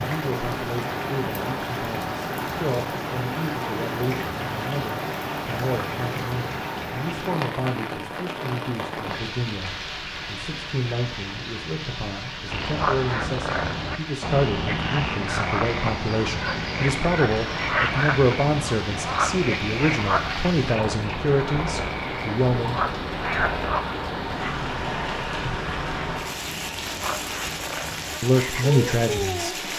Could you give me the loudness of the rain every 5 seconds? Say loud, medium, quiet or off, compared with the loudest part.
loud, loud, medium, medium, loud, loud.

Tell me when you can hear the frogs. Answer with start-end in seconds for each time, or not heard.
12.5-29.7.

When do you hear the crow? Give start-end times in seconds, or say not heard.
not heard.